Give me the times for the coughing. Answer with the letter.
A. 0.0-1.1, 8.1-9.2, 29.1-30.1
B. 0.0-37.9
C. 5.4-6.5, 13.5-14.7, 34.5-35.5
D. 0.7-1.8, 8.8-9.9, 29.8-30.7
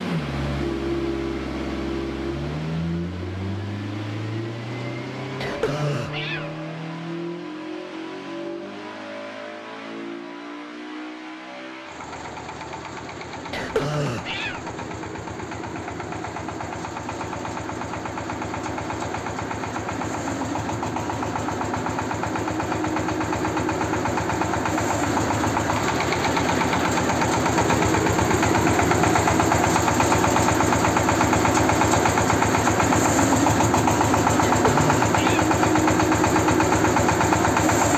C.